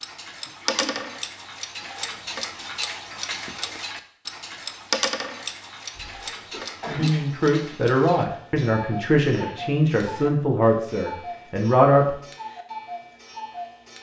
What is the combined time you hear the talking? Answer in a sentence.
You can hear the talking for 5 seconds altogether.